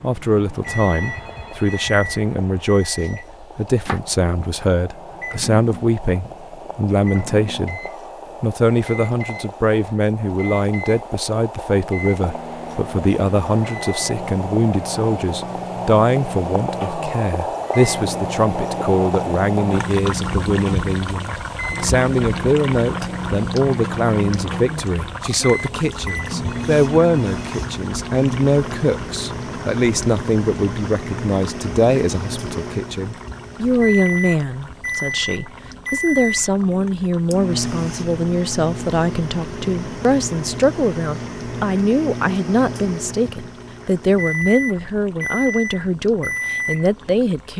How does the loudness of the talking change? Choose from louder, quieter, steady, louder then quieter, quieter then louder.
steady.